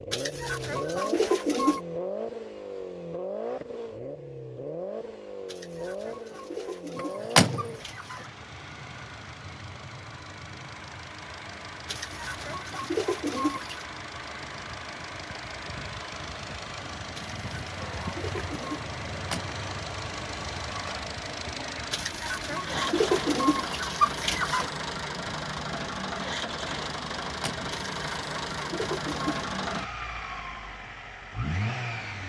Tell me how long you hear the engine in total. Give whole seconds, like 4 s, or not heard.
32 s.